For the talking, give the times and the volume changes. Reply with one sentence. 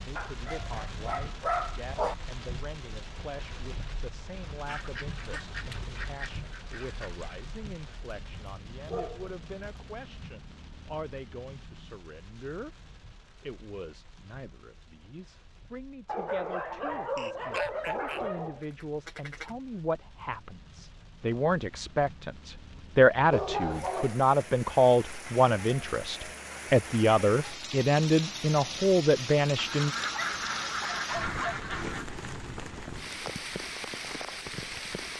You can hear the talking from 0.0 to 12.8 s, at a steady volume; and from 13.4 to 29.9 s, getting louder.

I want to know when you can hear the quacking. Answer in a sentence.
The quacking can be heard from 4.7 to 7.4 s, from 17.1 to 19.5 s and from 29.6 to 32.0 s.